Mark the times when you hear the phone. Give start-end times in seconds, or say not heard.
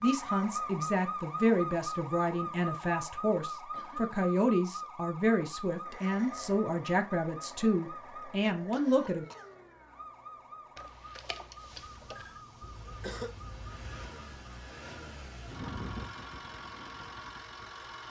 10.8-12.4.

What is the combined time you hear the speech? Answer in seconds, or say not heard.
9 s.